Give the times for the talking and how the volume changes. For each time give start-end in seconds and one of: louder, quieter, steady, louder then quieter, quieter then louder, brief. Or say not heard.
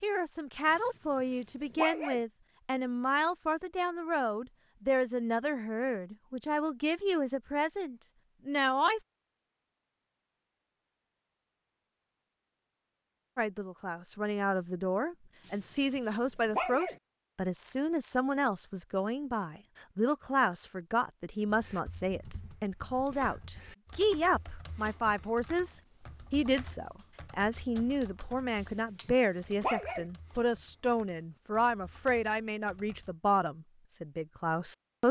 0.0-9.1 steady
13.3-35.0 steady.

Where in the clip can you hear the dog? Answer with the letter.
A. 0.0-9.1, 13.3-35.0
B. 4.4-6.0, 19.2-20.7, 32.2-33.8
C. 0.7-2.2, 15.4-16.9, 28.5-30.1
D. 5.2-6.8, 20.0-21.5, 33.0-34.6
C.